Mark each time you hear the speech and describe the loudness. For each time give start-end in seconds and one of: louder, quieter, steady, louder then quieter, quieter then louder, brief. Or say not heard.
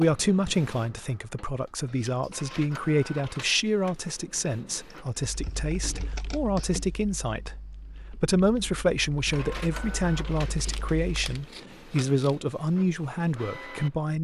0.0-14.1 steady.